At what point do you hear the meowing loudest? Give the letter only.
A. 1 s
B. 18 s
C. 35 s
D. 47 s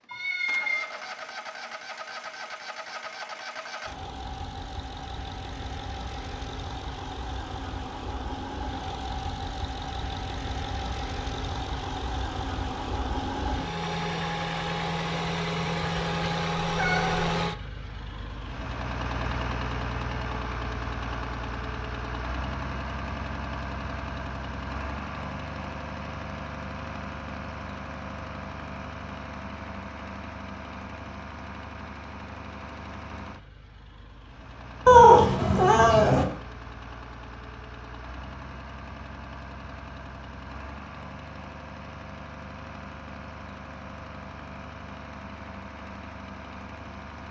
C.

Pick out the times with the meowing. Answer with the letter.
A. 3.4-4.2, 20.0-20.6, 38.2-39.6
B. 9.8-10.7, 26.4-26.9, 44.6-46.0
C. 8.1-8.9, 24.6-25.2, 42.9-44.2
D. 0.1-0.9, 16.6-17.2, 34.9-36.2
D.